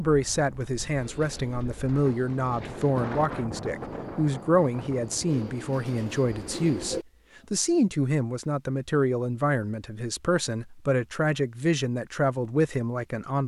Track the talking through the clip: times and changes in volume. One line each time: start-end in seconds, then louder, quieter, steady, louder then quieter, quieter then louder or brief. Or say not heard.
0.0-13.4 steady.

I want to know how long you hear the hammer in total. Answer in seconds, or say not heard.
not heard.